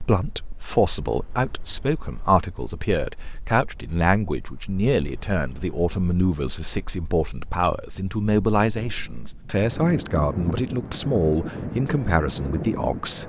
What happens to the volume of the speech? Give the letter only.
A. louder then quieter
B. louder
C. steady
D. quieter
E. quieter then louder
C.